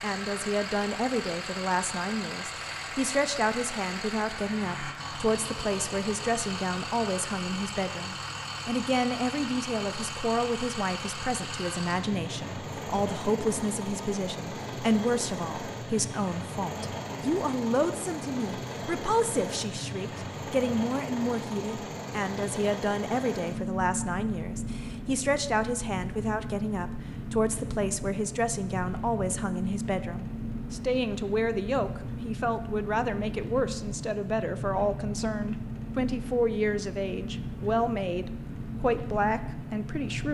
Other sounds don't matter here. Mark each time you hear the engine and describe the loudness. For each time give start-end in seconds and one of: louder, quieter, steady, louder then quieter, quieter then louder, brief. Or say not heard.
0.0-40.3 steady.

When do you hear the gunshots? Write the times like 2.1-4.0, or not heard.
not heard.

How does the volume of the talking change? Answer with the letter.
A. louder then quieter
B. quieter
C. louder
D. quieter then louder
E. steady
E.